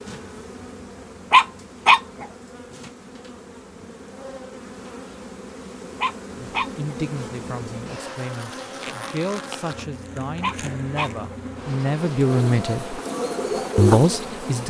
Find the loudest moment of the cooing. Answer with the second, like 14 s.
14 s.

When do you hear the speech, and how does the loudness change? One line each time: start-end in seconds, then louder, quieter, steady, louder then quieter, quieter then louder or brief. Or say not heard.
6.6-12.9 louder
13.8-14.6 brief.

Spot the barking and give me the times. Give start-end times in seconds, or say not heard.
1.3-2.2, 6.0-7.0, 10.4-11.3.